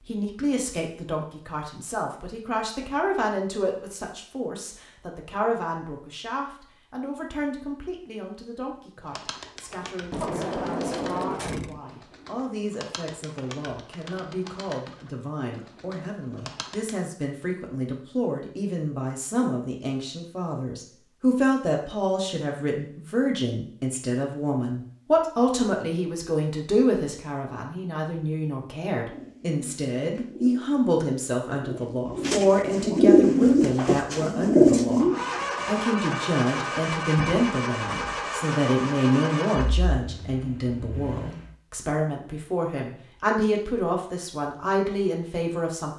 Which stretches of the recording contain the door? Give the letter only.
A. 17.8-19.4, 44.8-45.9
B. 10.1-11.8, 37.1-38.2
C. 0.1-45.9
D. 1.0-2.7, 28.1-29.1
B.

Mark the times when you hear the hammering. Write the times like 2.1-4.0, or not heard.
not heard.